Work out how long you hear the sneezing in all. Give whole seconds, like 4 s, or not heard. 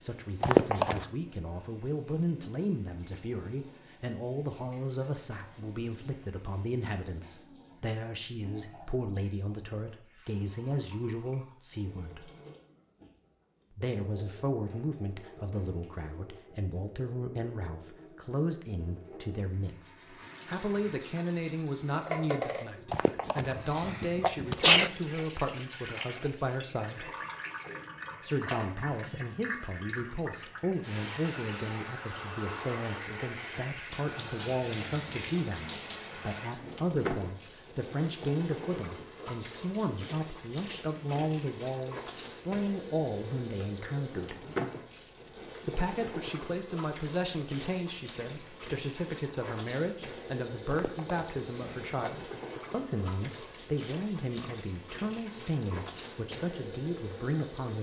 4 s.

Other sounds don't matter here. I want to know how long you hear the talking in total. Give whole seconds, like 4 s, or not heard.
54 s.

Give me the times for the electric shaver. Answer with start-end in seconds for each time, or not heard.
not heard.